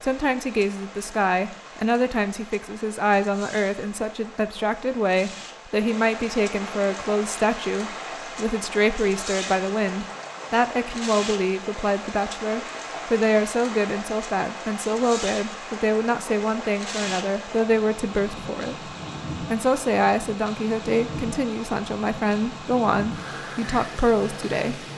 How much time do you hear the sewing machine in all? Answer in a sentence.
The sewing machine can't be heard in this clip.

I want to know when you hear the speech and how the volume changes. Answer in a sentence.
The speech can be heard from 0.0 to 24.9 s, at a steady volume.